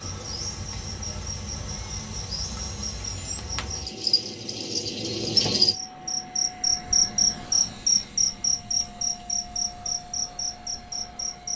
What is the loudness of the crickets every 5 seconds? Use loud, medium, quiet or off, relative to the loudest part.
medium, loud, medium.